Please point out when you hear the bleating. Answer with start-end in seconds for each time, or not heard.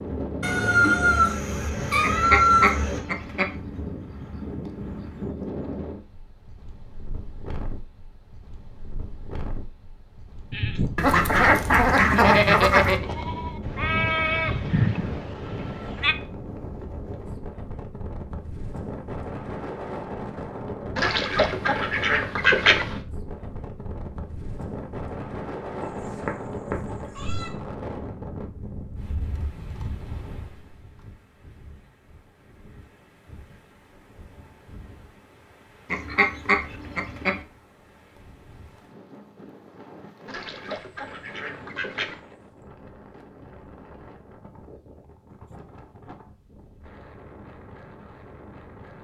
10.5-16.1.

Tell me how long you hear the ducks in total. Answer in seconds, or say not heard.
9 s.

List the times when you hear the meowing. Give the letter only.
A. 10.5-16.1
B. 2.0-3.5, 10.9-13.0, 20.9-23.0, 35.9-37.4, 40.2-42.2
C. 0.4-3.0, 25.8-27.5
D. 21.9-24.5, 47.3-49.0
C.